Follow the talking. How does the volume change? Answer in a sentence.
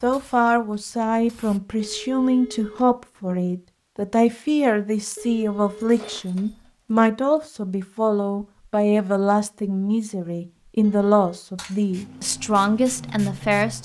The volume of the talking stays about the same.